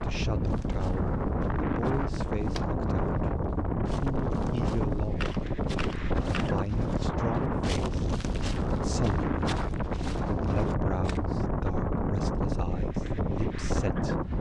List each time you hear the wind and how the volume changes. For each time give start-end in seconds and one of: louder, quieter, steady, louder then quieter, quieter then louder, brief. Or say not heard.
0.0-14.3 steady.